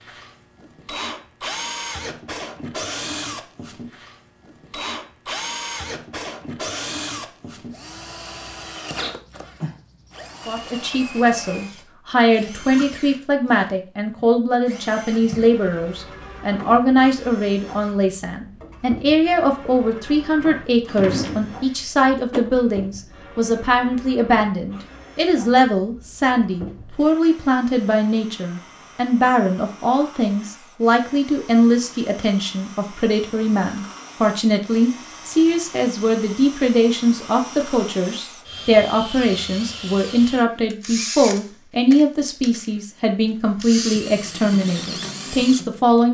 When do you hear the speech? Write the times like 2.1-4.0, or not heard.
10.4-46.0.